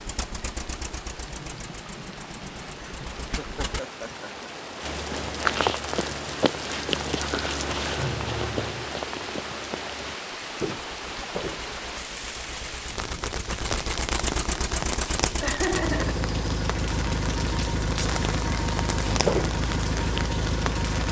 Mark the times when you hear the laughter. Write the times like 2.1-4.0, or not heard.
2.8-4.5, 15.4-16.2.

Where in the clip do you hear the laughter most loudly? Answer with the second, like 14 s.
16 s.